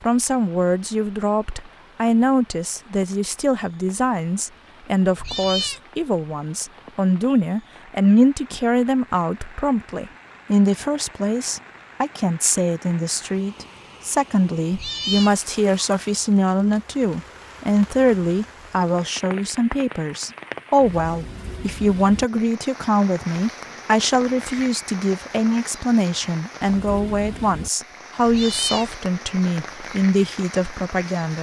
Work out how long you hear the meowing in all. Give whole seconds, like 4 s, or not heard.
2 s.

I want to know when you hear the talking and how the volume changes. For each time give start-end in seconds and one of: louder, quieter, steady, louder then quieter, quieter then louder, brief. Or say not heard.
0.1-31.3 steady.